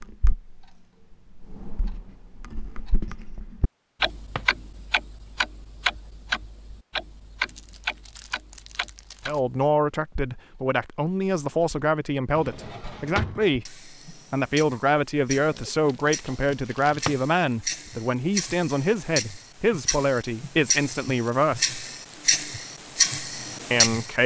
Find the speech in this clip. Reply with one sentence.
You can hear the speech from 9.2 to 21.8 s and from 23.7 to 24.2 s.